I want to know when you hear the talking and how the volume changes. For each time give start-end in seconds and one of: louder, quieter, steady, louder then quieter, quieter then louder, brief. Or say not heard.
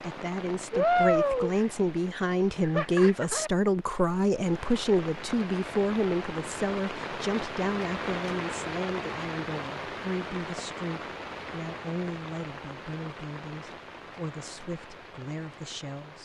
0.0-16.2 quieter.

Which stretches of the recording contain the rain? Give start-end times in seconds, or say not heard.
0.0-16.2.